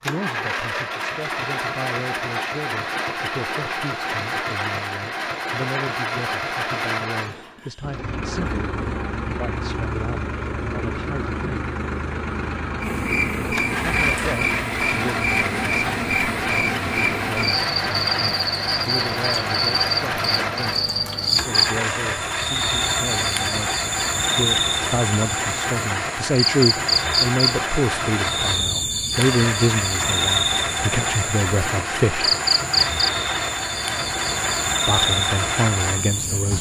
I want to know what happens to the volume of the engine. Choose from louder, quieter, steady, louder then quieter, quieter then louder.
steady.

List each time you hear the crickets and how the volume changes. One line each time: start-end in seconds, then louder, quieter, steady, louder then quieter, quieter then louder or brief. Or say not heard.
12.8-36.5 steady.